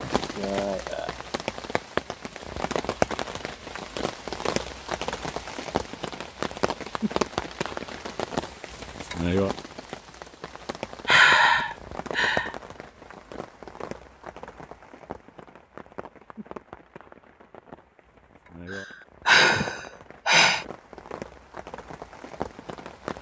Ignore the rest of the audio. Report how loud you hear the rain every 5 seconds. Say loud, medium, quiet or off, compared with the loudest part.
loud, loud, medium, quiet, medium.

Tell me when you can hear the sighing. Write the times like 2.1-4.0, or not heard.
0.3-1.2, 11.1-12.5, 18.7-20.6.